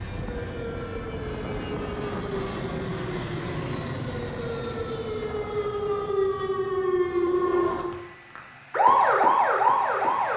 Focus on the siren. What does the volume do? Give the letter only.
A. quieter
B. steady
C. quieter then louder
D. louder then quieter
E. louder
E.